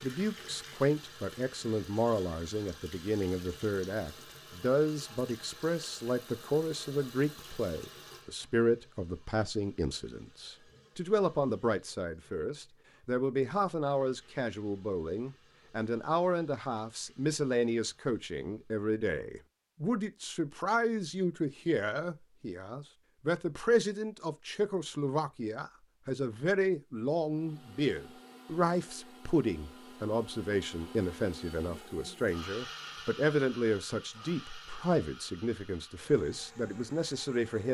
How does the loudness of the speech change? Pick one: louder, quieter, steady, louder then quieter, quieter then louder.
steady.